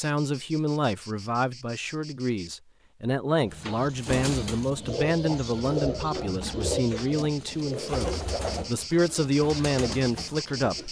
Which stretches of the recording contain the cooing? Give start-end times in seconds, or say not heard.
3.5-10.8.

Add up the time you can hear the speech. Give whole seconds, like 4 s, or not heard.
11 s.